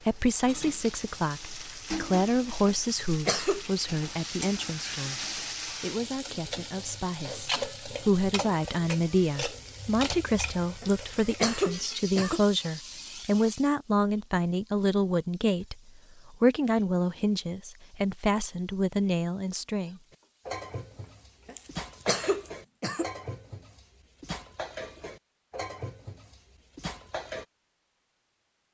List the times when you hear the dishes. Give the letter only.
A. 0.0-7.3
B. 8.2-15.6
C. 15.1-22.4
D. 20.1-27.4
D.